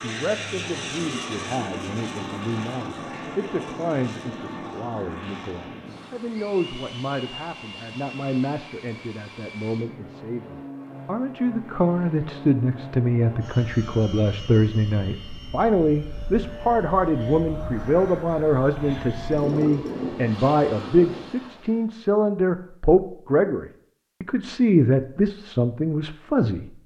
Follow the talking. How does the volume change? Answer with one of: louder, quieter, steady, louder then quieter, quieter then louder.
louder.